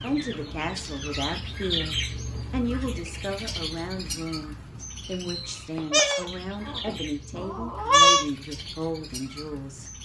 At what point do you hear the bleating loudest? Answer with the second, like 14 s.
8 s.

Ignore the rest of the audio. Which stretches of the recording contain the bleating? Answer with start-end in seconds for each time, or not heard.
5.8-8.2.